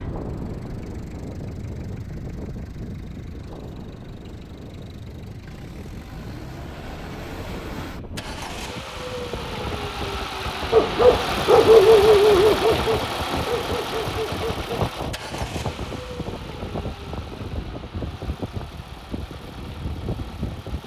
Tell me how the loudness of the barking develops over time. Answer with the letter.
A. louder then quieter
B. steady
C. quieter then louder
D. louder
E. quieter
E.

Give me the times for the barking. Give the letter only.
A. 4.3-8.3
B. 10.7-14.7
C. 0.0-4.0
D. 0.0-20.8
B.